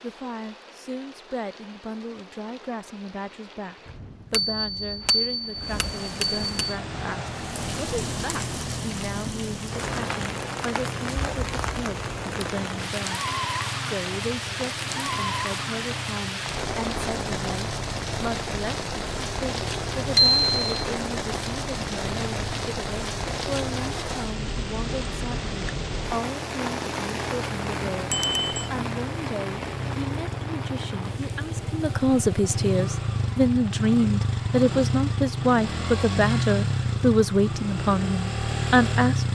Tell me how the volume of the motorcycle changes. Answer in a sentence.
The volume of the motorcycle goes up.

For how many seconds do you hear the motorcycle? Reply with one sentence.
You can hear the motorcycle for 33 seconds altogether.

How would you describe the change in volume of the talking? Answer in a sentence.
The volume of the talking goes up.